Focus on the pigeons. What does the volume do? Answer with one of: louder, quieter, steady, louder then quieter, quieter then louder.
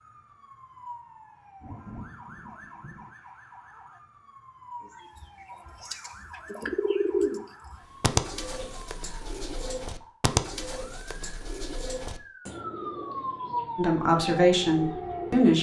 quieter.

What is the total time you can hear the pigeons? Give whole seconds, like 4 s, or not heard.
10 s.